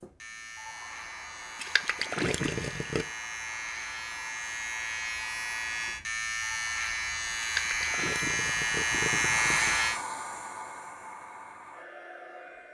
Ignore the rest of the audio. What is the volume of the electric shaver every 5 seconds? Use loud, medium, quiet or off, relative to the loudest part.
medium, loud, off.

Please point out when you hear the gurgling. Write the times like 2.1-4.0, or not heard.
1.6-3.0, 7.4-9.9.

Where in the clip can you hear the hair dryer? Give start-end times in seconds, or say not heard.
0.0-12.6.